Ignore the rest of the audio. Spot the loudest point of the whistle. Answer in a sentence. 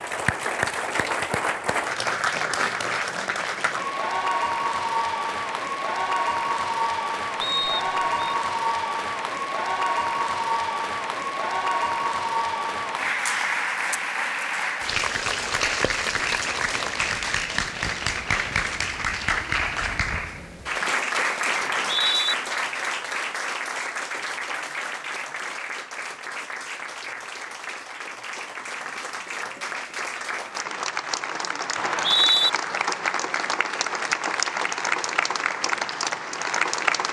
The volume of the whistle peaks at 32 seconds.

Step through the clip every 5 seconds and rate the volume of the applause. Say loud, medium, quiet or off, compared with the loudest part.
loud, loud, loud, loud, loud, medium, loud, loud.